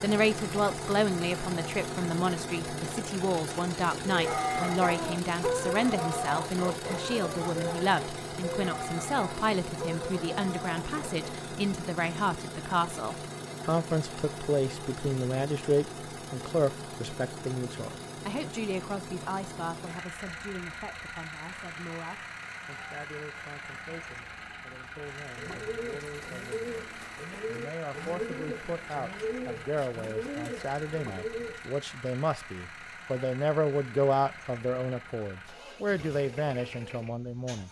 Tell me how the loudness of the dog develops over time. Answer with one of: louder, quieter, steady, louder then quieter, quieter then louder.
quieter.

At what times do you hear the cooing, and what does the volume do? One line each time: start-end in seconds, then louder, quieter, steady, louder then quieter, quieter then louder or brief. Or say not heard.
25.3-31.6 steady.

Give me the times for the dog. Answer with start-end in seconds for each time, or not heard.
4.0-11.5.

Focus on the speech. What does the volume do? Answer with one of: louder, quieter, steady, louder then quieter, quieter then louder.
quieter then louder.